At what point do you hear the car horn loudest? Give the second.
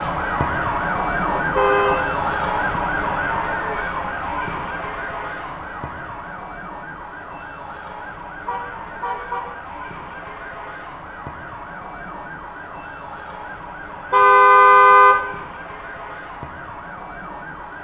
15 s.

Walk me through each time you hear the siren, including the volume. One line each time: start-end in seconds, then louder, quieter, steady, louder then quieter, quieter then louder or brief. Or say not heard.
0.0-17.8 quieter.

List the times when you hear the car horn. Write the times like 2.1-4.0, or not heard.
1.4-2.0, 8.4-9.5, 14.1-15.2.